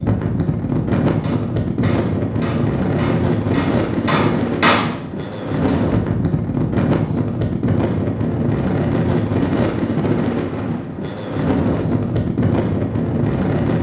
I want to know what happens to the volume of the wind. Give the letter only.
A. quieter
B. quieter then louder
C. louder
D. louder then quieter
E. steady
E.